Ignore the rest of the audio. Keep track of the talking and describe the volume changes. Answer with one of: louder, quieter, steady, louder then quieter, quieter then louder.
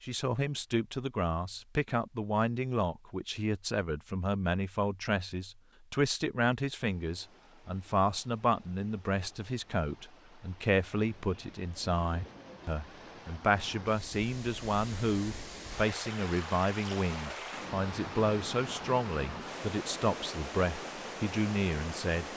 steady.